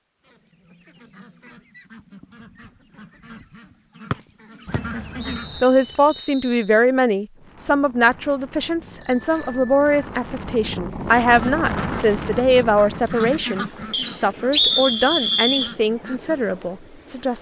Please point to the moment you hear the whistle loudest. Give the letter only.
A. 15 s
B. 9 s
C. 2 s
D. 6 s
A.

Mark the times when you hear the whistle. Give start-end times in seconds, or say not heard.
4.1-6.7, 13.9-15.8.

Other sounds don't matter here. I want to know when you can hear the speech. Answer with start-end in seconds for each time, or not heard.
5.6-17.3.